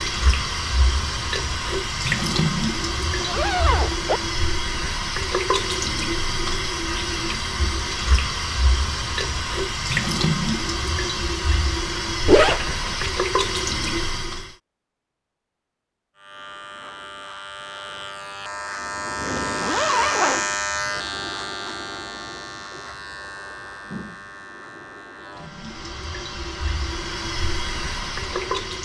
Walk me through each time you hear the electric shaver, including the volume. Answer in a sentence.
You can hear the electric shaver from 16.1 to 28.6 s, getting louder then quieter.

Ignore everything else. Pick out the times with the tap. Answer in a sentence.
The tap can be heard from 0.0 to 14.6 s and from 25.3 to 28.7 s.